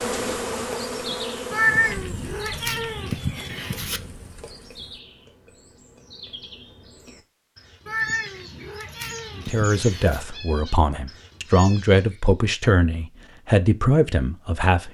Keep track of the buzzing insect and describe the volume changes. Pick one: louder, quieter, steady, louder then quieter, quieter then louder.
quieter.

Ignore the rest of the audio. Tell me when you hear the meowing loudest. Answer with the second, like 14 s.
2 s.